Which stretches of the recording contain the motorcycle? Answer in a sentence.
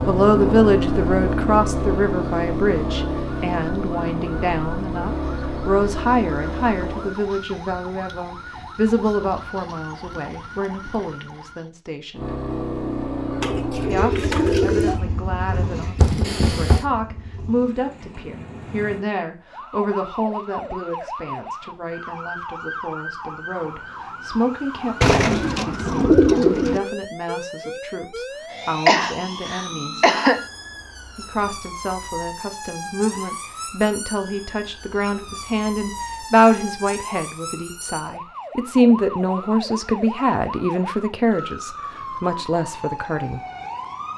You can hear the motorcycle from 0.0 to 7.2 s and from 12.2 to 19.1 s.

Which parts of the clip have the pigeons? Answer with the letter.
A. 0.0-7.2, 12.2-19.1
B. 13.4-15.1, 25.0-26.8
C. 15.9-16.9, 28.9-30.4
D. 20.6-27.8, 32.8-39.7
B.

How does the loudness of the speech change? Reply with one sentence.
The volume of the speech goes down, then up.